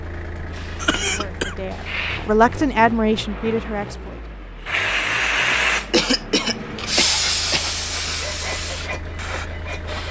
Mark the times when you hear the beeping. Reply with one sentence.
The beeping can't be heard in this clip.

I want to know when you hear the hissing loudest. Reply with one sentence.
The volume of the hissing peaks at 5 seconds.